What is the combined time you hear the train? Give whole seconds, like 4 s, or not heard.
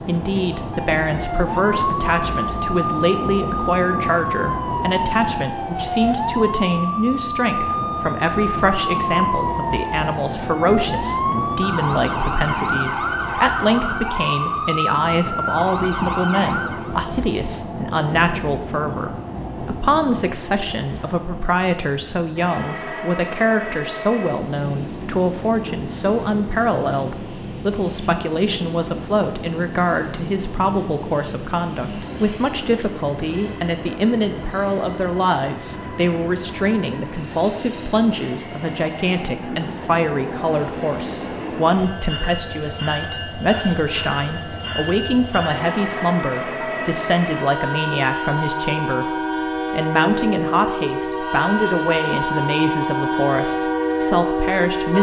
55 s.